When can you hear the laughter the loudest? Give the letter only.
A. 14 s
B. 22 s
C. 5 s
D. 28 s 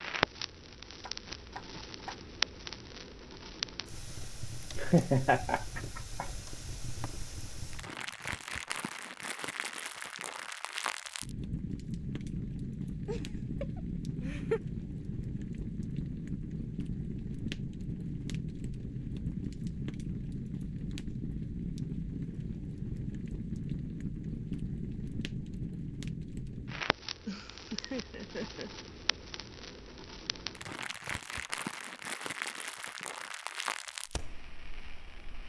C.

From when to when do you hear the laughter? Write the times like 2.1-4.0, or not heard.
4.8-6.2, 13.1-14.6, 27.2-28.7.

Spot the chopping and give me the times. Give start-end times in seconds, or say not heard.
1.0-2.2.